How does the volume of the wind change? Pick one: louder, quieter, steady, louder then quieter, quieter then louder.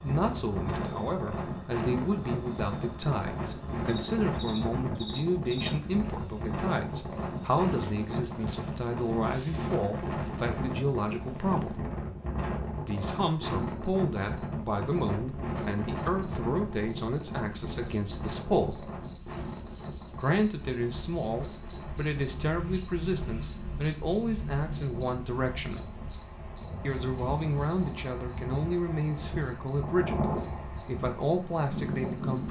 quieter then louder.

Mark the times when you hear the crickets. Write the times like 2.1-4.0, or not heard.
0.0-32.4.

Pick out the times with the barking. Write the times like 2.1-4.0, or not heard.
not heard.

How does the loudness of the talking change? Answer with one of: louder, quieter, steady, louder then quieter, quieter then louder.
steady.